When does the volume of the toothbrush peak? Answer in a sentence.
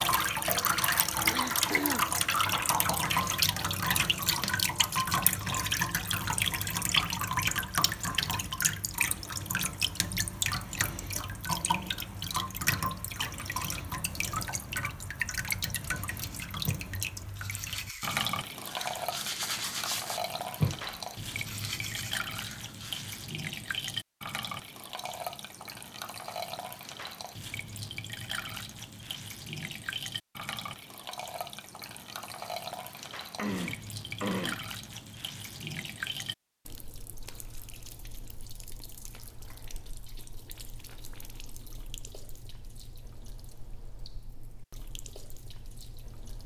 The loudest moment of the toothbrush is at 21 seconds.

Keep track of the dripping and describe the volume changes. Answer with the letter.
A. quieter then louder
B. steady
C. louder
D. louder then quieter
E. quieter
E.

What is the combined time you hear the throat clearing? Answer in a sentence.
The throat clearing can be heard for 2 seconds in total.